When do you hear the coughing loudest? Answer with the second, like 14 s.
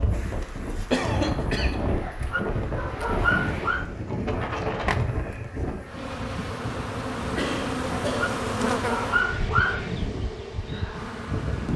1 s.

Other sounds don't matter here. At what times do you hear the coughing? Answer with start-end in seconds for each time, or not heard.
0.9-1.8, 7.3-8.3.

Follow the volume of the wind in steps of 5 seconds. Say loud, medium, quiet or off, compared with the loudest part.
loud, medium, loud.